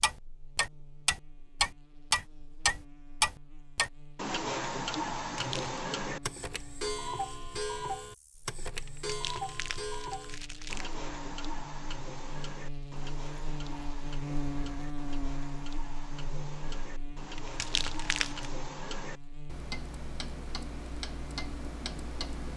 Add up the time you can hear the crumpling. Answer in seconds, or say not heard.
4 s.